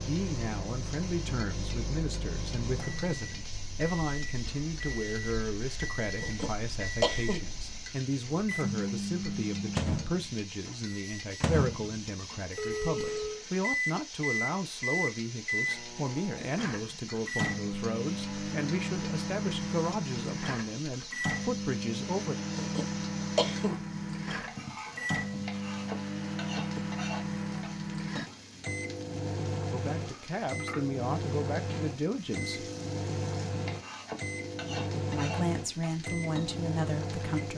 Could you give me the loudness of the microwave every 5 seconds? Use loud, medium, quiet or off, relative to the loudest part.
medium, loud, loud, loud, loud, loud, loud, loud.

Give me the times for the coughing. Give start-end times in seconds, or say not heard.
6.2-7.5, 22.5-23.8.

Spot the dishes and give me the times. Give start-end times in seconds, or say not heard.
not heard.